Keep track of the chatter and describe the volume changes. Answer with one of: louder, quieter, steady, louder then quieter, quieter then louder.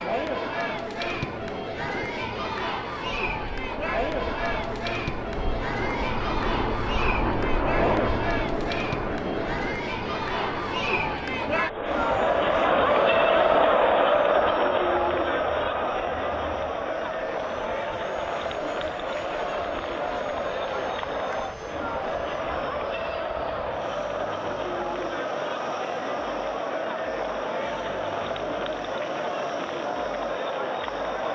louder then quieter.